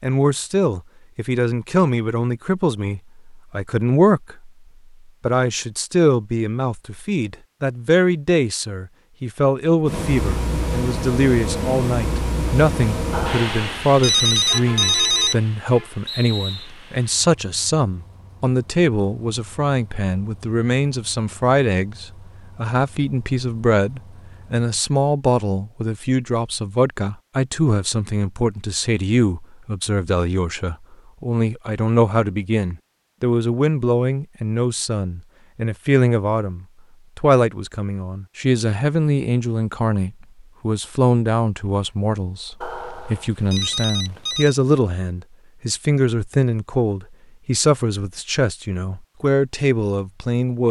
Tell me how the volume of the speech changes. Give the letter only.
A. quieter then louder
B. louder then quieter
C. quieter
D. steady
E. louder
D.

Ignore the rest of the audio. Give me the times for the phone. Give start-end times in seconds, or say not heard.
13.1-15.4, 42.6-44.5.